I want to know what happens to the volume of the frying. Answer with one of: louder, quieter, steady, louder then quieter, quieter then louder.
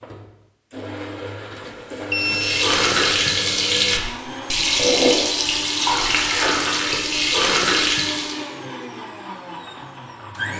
steady.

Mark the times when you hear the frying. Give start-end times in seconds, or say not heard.
2.1-8.4.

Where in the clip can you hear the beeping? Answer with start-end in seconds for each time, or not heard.
1.6-2.7.